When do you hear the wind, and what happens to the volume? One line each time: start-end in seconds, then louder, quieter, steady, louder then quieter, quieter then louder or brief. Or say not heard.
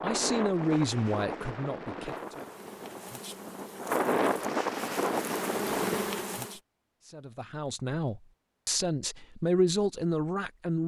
0.0-6.1 quieter then louder.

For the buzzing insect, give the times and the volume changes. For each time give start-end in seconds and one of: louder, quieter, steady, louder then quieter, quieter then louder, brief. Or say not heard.
2.0-6.6 louder.